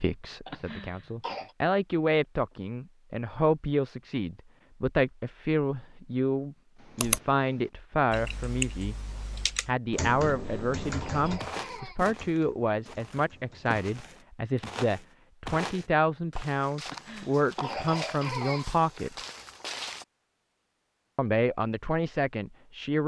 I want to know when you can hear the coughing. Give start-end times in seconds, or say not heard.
0.5-1.6, 10.3-12.0, 16.9-18.7.